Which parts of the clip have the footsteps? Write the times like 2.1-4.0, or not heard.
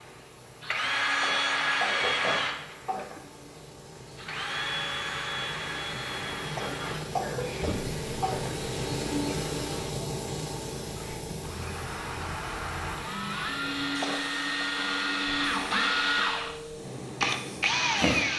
not heard.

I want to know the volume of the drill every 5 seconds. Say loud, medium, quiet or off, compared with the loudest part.
loud, medium, medium, loud.